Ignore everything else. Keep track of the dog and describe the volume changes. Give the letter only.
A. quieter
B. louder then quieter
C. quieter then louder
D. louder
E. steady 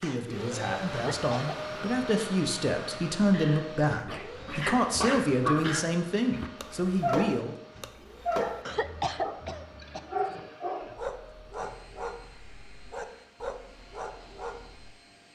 A.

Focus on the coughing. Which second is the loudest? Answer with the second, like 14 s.
9 s.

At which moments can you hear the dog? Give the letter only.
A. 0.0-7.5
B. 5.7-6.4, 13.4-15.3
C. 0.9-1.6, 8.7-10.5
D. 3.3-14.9
D.